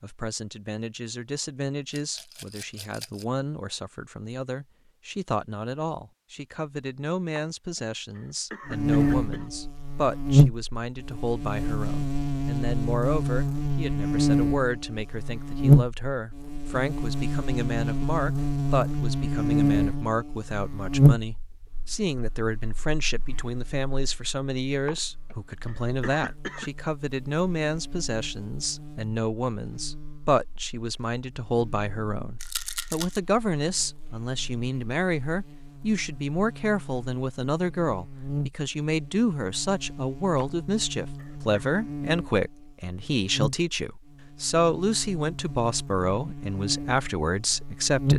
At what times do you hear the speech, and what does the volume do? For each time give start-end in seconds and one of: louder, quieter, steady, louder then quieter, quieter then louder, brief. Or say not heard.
0.0-48.1 louder.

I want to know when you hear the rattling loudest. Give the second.
33 s.